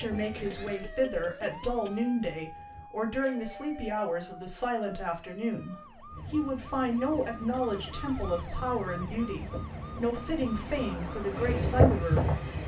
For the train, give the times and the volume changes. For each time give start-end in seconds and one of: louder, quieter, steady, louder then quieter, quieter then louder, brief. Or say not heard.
0.0-2.9 brief
6.1-12.6 louder.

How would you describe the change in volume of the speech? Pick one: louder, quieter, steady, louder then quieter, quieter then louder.
steady.